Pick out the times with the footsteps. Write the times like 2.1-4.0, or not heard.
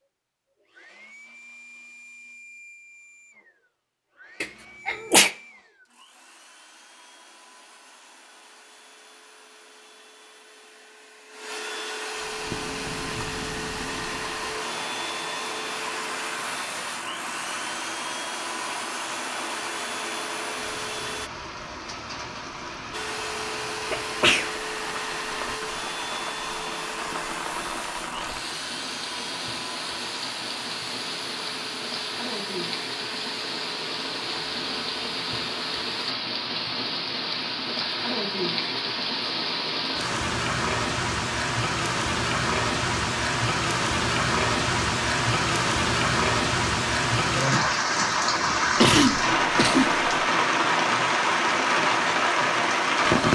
not heard.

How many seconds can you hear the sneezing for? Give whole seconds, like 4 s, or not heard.
3 s.